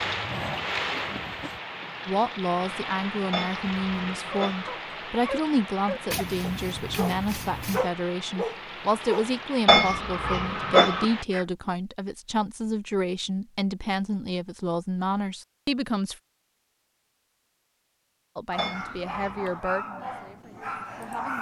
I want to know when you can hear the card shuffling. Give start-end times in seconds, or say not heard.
6.1-7.9.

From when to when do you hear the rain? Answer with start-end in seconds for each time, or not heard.
0.0-11.2.